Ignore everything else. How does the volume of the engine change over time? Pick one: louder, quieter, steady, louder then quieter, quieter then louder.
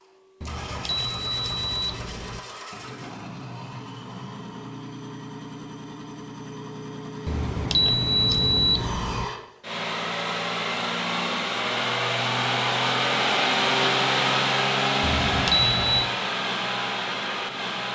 louder.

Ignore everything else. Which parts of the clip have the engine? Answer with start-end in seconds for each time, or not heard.
0.0-17.9.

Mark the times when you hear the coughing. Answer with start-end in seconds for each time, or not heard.
not heard.